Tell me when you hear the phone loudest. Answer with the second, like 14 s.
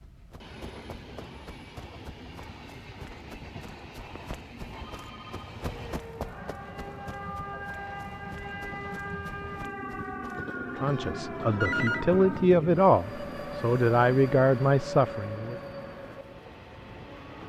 12 s.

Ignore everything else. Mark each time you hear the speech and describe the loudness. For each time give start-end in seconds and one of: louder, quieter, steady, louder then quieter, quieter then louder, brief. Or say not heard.
10.8-15.6 louder.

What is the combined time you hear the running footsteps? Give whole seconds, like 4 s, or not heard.
11 s.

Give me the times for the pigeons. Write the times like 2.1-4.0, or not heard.
not heard.